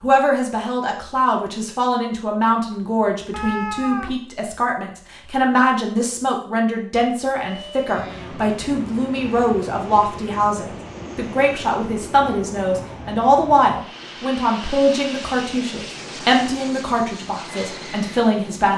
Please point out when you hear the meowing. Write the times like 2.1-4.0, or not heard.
2.7-4.2.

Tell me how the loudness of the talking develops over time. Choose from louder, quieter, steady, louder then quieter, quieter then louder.
steady.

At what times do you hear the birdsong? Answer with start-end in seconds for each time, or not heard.
not heard.